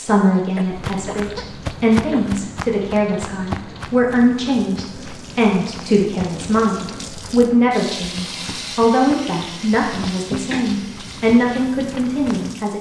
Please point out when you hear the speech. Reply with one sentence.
The speech can be heard from 0.0 to 12.7 s.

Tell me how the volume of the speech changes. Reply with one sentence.
The loudness of the speech stays about the same.